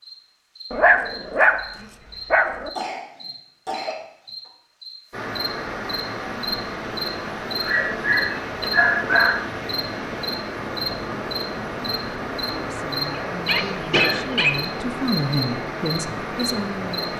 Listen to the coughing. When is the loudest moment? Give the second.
14 s.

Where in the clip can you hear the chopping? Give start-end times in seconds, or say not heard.
not heard.